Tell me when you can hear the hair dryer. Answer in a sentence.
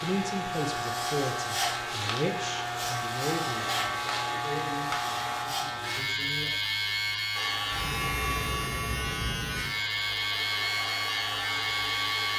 You can hear the hair dryer from 0.0 to 5.5 s and from 7.3 to 12.3 s.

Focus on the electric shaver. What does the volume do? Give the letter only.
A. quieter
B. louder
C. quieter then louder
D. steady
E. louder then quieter
D.